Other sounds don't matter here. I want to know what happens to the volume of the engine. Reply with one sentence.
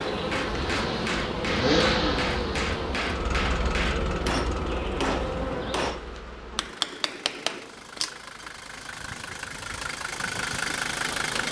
The volume of the engine goes down, then up.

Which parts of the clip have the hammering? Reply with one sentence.
You can hear the hammering from 0.0 to 8.5 s.